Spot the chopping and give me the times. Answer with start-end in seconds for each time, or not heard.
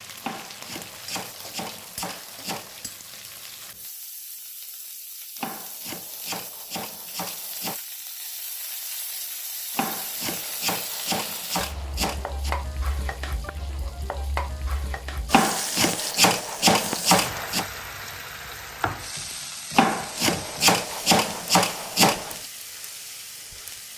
0.2-3.0, 5.3-7.8, 9.8-12.6, 15.3-17.6, 19.8-22.4.